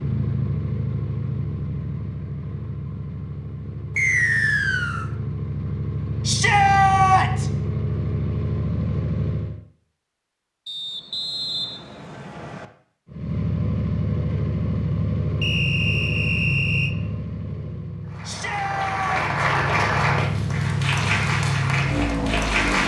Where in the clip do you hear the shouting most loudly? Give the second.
7 s.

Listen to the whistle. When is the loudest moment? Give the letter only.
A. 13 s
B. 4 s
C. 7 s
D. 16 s
B.